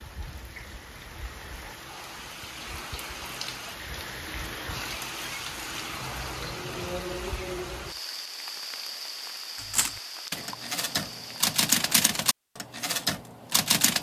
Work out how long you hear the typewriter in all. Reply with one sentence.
You can hear the typewriter for 4 seconds altogether.